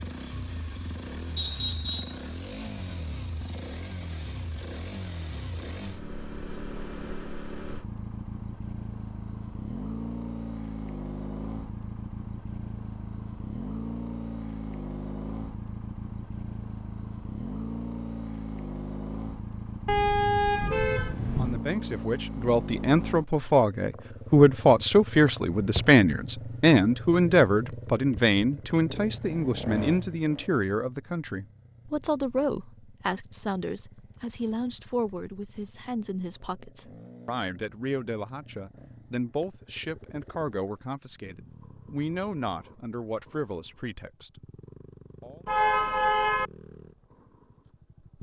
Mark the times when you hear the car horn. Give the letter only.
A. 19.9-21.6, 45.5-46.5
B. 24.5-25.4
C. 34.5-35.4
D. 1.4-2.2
A.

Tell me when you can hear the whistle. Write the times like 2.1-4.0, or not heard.
1.4-2.2.